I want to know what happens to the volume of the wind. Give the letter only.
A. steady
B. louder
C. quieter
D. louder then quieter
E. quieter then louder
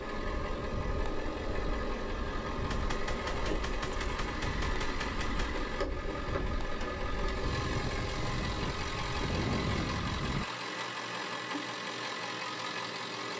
B.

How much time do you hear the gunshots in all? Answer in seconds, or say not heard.
3 s.